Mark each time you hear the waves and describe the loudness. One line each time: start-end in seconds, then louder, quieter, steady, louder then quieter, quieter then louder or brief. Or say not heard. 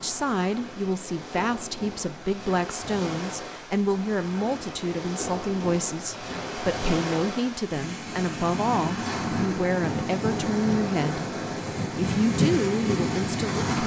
0.0-13.8 louder.